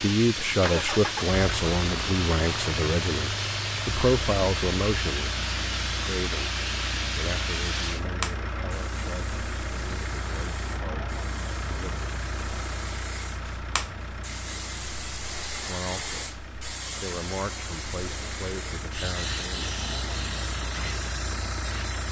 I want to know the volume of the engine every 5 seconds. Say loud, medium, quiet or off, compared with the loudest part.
loud, loud, loud, medium, loud.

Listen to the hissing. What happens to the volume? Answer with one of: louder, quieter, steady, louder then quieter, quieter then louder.
quieter then louder.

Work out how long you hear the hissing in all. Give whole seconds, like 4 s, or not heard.
22 s.